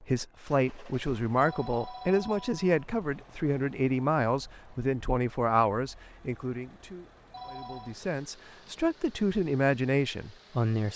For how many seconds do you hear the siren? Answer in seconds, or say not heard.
not heard.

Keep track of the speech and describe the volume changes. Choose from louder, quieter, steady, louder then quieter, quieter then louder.
quieter then louder.